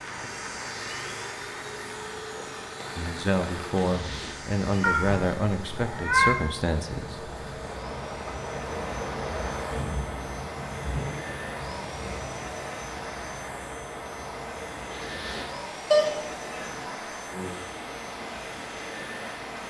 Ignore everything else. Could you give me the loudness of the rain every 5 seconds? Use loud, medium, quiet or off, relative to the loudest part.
medium, loud, loud, medium.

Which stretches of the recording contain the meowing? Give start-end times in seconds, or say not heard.
4.8-6.4, 15.9-16.9.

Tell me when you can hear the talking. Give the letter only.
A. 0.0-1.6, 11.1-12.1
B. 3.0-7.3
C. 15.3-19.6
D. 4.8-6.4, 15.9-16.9
B.